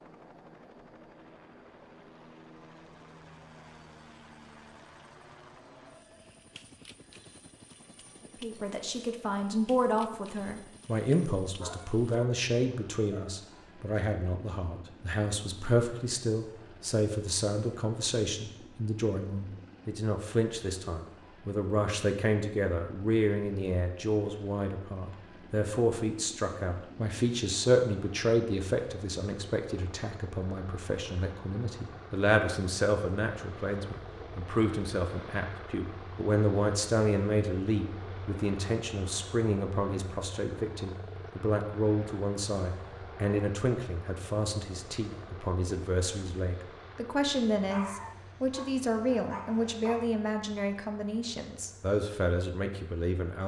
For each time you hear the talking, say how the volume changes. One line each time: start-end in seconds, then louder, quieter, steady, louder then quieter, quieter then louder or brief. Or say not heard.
8.3-53.4 steady.